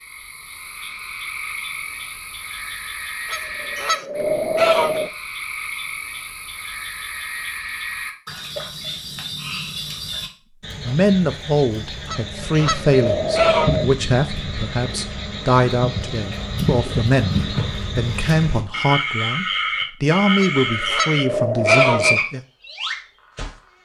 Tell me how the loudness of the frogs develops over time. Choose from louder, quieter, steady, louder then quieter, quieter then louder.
louder.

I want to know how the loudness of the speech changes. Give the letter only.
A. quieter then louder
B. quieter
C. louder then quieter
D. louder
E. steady
E.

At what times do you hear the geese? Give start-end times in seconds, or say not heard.
3.3-5.1, 12.1-13.9, 20.4-22.2.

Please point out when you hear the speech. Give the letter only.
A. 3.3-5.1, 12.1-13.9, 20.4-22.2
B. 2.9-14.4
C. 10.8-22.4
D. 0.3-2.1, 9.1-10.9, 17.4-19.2
C.